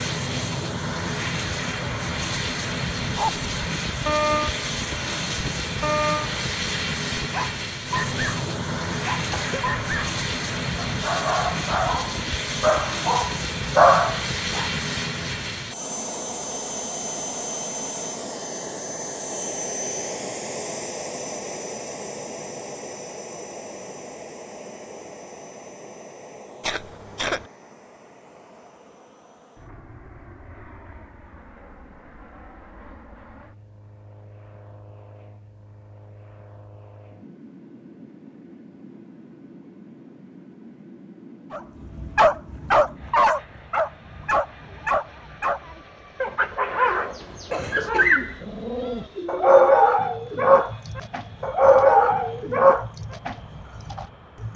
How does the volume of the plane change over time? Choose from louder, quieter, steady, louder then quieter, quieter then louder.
quieter.